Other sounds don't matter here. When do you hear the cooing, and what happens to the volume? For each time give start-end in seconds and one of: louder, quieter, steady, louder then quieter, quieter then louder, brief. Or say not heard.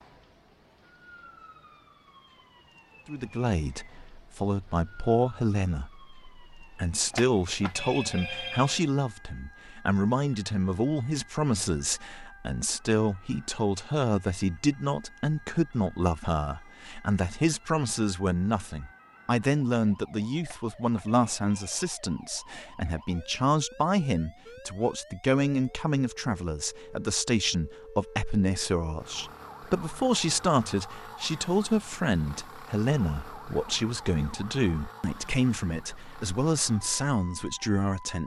not heard.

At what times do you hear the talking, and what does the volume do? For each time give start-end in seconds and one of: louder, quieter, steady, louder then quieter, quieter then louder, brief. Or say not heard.
3.0-38.2 steady.